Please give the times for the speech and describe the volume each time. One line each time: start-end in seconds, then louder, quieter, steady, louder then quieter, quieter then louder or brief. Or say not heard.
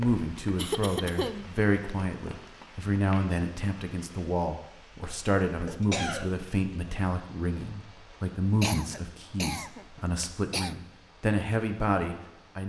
0.0-12.6 steady.